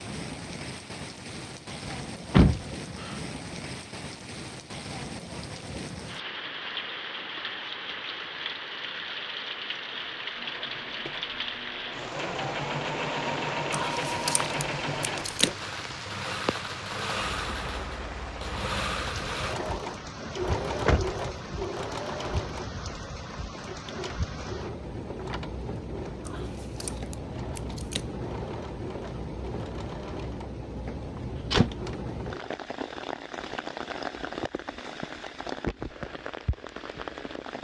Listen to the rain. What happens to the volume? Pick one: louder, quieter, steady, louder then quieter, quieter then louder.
steady.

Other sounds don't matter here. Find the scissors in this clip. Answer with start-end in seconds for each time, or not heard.
13.7-15.6, 26.2-28.1.